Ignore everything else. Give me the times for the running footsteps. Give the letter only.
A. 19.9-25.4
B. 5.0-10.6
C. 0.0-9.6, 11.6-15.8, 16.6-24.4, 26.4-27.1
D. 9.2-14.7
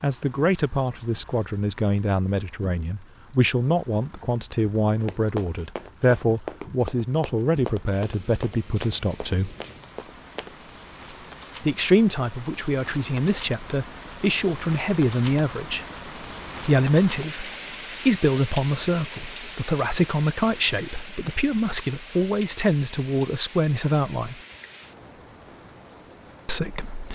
B.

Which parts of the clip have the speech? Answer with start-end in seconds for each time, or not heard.
0.0-9.6, 11.6-15.8, 16.6-24.4, 26.4-27.1.